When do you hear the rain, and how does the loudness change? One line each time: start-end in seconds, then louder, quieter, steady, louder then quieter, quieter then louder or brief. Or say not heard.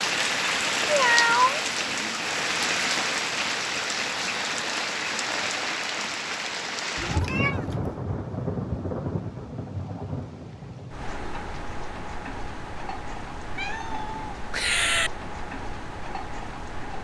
0.0-16.9 quieter.